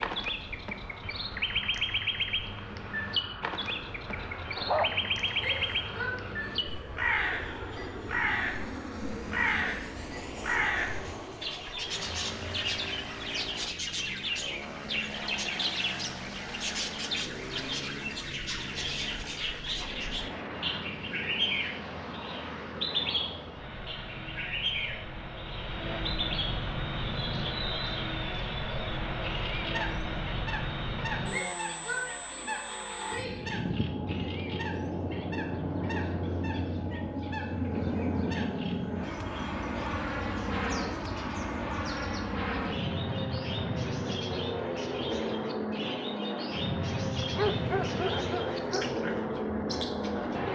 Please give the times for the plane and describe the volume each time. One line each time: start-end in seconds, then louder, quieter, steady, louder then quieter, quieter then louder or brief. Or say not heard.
0.2-50.4 louder.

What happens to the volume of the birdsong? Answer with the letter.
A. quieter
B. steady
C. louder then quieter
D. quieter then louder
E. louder
A.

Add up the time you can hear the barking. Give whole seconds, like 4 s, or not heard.
3 s.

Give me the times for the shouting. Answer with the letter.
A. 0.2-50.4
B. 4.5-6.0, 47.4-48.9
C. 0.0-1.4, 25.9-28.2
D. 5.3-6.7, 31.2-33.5
D.